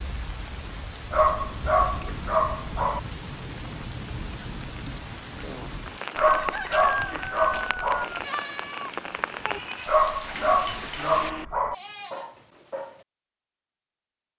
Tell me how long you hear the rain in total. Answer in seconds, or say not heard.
11 s.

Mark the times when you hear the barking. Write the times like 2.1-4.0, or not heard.
1.1-3.0, 6.2-8.1, 9.8-11.8.